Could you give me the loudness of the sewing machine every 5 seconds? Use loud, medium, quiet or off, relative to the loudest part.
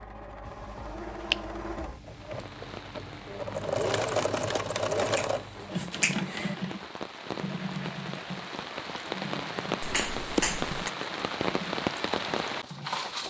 loud, loud, medium.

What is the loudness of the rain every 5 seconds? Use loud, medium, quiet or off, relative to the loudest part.
quiet, medium, loud.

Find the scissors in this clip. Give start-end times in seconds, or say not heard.
not heard.